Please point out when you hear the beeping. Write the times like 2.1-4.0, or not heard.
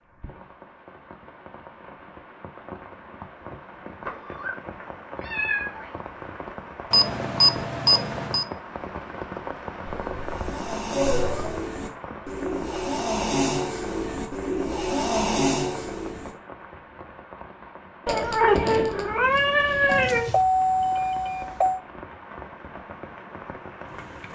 6.9-8.4, 19.9-21.8.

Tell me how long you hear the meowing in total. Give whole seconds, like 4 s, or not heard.
6 s.